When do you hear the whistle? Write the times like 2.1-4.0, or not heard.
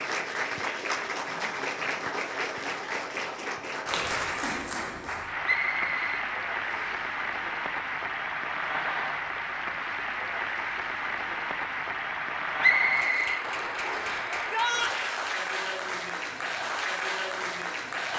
5.4-7.0, 12.6-14.2.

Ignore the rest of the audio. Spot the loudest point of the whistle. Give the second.
13 s.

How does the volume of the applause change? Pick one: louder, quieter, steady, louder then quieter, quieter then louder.
steady.